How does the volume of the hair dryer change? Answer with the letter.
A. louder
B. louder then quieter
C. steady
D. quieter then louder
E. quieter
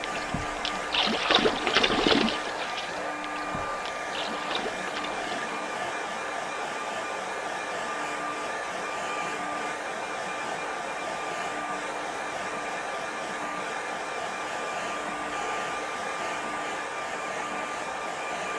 C.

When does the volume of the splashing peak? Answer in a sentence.
The loudest moment of the splashing is at 2 seconds.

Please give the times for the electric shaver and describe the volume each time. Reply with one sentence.
You can't hear the electric shaver here.